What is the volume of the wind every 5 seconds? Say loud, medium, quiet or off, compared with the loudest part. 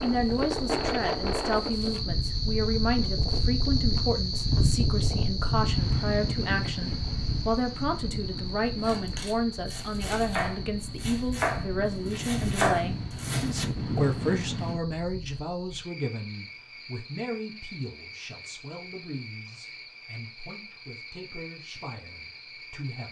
loud, loud, loud, off, off.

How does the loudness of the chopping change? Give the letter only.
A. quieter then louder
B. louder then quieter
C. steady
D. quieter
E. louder
B.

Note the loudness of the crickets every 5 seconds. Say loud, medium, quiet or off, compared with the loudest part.
loud, loud, medium, quiet, quiet.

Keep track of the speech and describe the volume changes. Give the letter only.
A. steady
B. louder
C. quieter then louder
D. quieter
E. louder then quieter
D.